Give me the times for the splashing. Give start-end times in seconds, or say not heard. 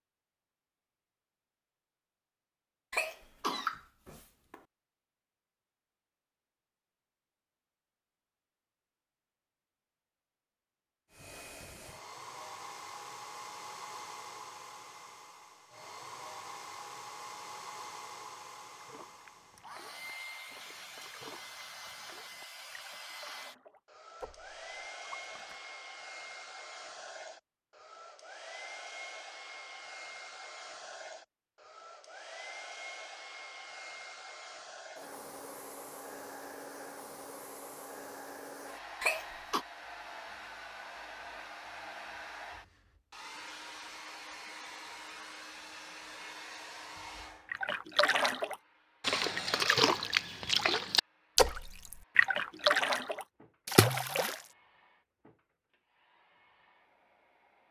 18.8-25.6, 47.5-54.4.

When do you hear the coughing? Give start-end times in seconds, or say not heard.
2.9-4.5, 39.0-39.6.